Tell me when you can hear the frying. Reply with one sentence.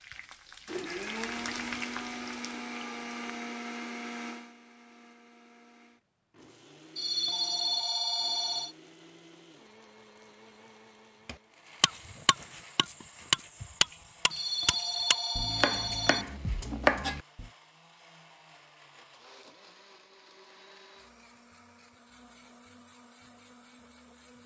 You can hear the frying from 0.0 to 3.4 s.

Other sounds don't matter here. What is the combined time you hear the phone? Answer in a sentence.
You can hear the phone for 4 seconds altogether.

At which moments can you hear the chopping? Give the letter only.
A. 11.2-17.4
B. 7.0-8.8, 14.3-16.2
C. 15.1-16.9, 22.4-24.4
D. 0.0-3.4
A.